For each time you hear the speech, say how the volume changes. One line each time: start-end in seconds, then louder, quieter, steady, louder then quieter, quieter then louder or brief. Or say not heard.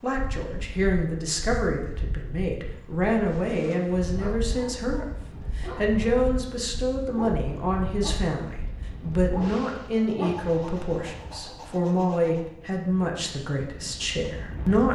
0.0-14.8 steady.